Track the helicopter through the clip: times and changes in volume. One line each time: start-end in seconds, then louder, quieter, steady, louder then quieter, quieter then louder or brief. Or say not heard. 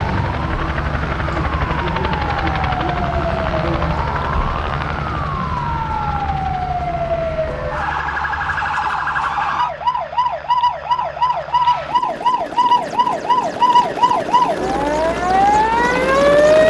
0.0-16.6 quieter then louder.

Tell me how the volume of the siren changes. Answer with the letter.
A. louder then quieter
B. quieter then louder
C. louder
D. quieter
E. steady
C.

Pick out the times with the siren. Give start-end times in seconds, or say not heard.
0.1-16.6.